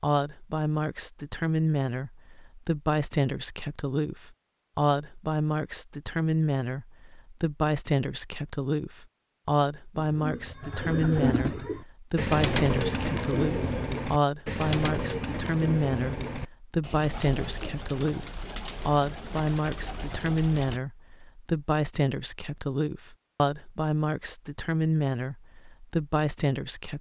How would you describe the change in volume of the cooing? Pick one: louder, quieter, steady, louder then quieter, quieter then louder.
quieter.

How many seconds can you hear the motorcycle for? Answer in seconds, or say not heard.
not heard.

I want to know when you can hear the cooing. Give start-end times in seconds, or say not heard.
10.2-20.8.